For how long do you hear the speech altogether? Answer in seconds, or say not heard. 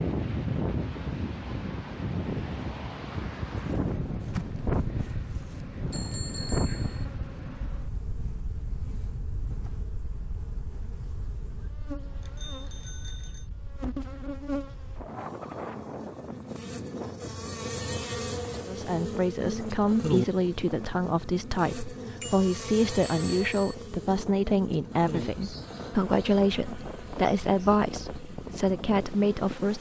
11 s.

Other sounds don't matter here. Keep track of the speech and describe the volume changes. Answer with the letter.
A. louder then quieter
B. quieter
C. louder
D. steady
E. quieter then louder
D.